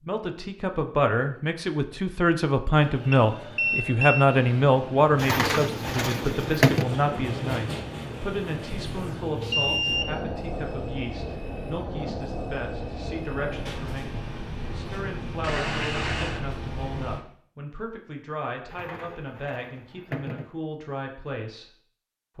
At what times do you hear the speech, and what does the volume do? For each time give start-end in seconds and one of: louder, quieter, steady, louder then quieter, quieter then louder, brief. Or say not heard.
0.0-21.7 quieter.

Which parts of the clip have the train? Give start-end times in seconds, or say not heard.
2.8-17.2.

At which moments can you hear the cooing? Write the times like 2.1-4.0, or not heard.
5.2-6.8, 18.6-20.5.